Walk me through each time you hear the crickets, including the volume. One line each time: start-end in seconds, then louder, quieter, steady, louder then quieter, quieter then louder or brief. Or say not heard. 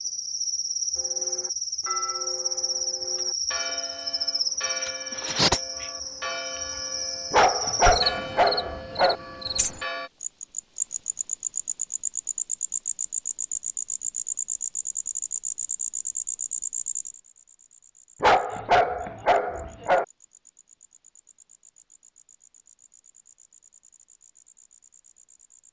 0.0-25.6 quieter.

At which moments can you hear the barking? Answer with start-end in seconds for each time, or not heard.
7.3-9.2, 18.2-20.1.